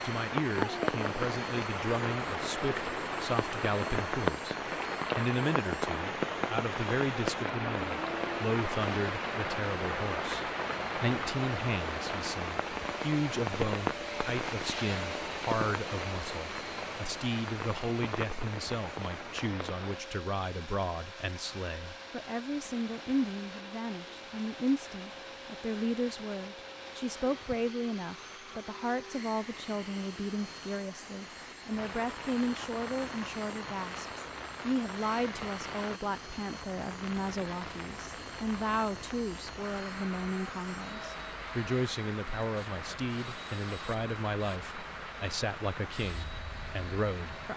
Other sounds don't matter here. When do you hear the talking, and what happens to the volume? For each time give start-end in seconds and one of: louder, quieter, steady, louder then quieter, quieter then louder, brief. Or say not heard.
0.1-47.5 steady.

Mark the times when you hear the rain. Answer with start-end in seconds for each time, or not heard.
0.0-47.5.